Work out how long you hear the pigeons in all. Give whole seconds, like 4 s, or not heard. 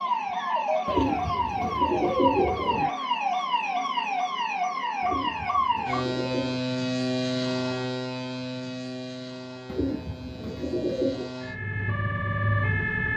5 s.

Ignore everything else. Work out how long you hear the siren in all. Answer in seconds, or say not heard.
13 s.